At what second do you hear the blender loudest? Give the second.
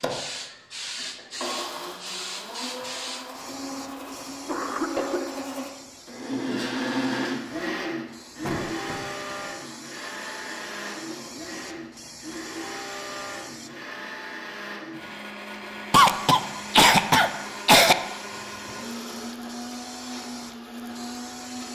7 s.